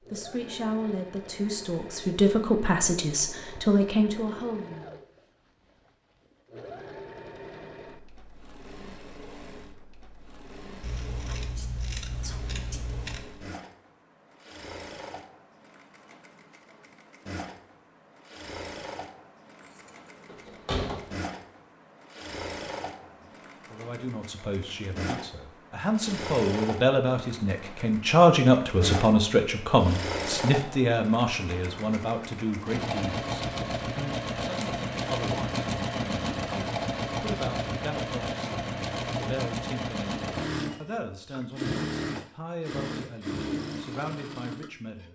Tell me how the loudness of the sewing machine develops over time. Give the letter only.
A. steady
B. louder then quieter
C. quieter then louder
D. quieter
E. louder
E.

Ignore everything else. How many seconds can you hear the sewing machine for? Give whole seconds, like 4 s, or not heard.
45 s.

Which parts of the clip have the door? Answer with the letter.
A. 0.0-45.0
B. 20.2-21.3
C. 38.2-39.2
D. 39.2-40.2
B.